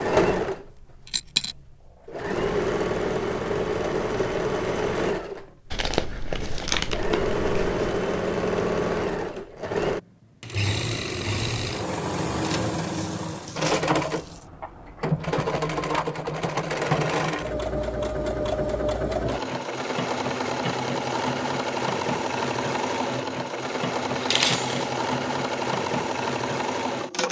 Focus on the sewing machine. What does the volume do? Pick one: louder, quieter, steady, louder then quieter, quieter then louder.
steady.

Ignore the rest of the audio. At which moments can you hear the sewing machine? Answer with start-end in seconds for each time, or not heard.
0.0-27.2.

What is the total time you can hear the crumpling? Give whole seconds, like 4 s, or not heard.
2 s.